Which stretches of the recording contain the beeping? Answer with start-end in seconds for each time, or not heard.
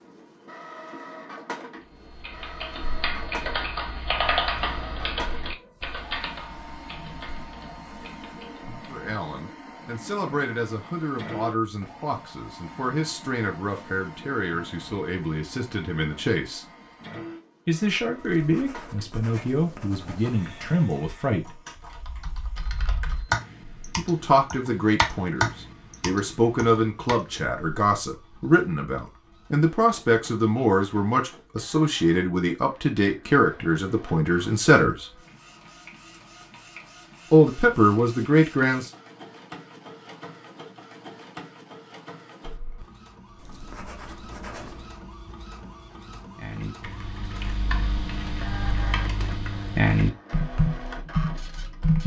not heard.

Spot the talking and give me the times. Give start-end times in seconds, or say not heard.
8.8-16.6, 17.6-21.6, 23.9-35.0, 37.3-38.9.